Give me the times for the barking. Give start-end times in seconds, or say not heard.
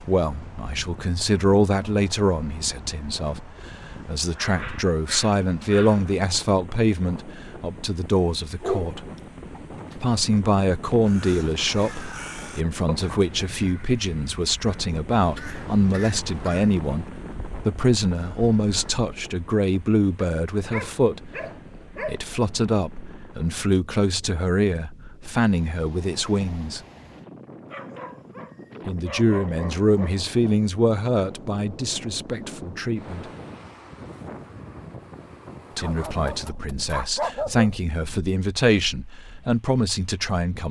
3.7-6.2, 8.6-10.1, 20.1-22.2, 27.7-30.2, 35.8-37.8.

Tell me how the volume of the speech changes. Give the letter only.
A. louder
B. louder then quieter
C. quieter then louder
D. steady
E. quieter
D.